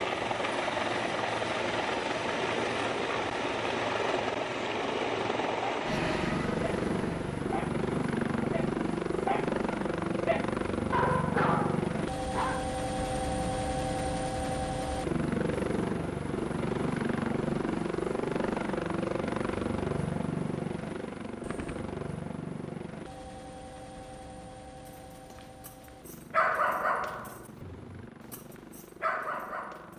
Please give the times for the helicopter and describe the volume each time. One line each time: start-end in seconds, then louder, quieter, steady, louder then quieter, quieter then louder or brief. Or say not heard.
0.0-29.9 quieter.